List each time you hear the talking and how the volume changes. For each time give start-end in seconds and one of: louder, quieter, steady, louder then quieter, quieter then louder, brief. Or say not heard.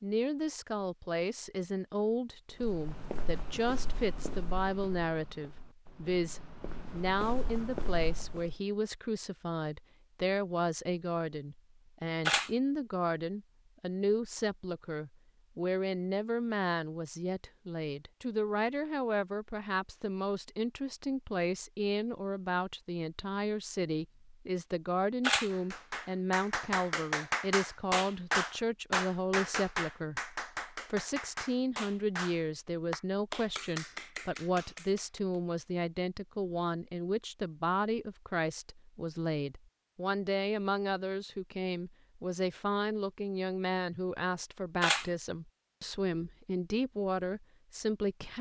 0.0-48.3 steady.